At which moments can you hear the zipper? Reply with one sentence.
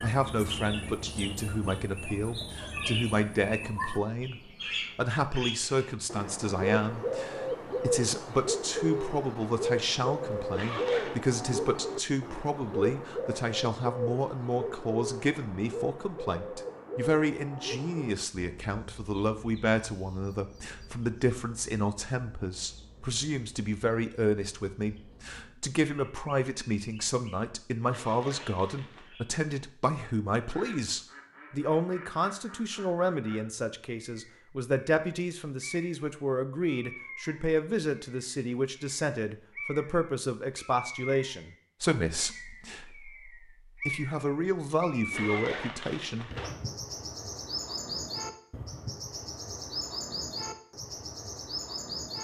You can hear the zipper from 10.5 to 11.2 s, from 27.9 to 29.1 s and from 45.1 to 46.5 s.